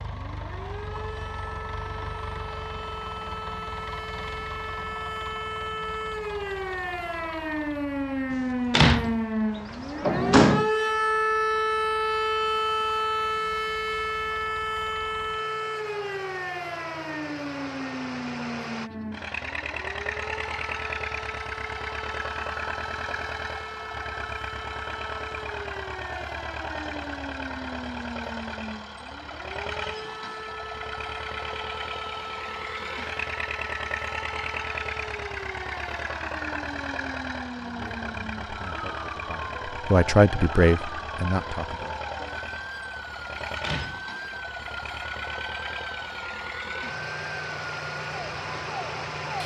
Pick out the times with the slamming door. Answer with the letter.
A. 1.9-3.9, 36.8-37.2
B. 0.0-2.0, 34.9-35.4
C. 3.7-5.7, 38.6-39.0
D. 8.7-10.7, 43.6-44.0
D.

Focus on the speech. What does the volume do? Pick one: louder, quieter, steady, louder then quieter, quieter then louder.
louder then quieter.